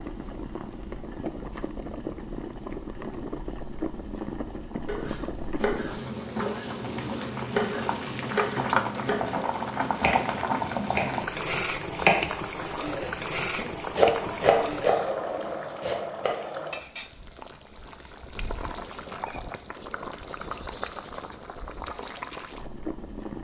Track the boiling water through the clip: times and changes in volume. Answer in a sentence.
You can hear the boiling water from 0.0 to 23.3 s, getting louder then quieter.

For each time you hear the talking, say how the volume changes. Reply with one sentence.
You can't hear the talking here.